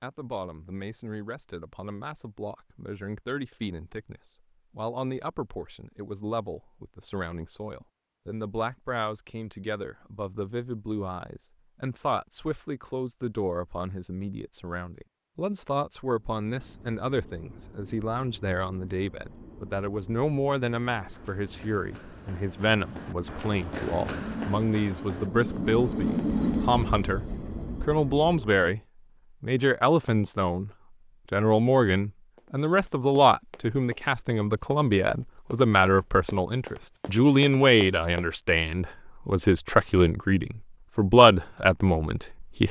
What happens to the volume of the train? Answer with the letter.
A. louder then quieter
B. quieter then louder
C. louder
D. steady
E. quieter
C.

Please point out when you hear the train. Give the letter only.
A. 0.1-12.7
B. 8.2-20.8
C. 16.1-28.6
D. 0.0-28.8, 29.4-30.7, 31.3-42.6
C.